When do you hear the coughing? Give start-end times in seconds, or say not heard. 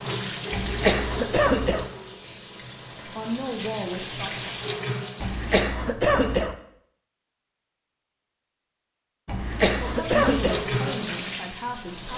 0.5-1.9, 5.2-6.5, 9.2-10.7.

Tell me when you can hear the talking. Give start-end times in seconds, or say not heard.
3.0-4.5, 9.8-12.1.